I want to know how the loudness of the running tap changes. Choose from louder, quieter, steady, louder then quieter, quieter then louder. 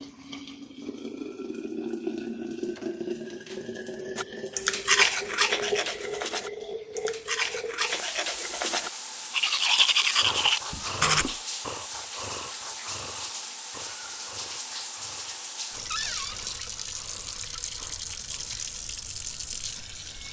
steady.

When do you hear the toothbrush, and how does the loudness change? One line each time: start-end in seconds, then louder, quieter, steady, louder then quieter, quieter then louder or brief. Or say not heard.
4.2-11.2 quieter then louder.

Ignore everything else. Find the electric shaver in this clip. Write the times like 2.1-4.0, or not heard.
not heard.